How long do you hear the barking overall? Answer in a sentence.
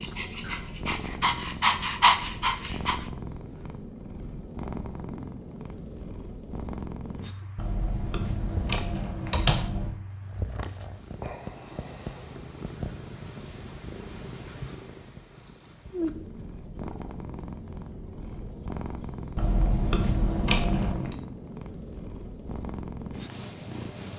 The barking can be heard for 3 seconds in total.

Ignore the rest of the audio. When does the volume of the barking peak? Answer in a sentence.
The loudest moment of the barking is at 2 seconds.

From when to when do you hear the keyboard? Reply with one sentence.
You can hear the keyboard from 7.5 to 9.9 s and from 19.4 to 21.1 s.